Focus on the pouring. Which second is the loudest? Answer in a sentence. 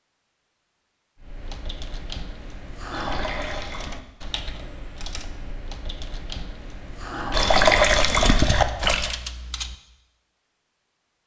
The loudest moment of the pouring is at 8 seconds.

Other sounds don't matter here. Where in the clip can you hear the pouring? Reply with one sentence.
The pouring can be heard from 2.9 to 4.0 s and from 7.3 to 9.2 s.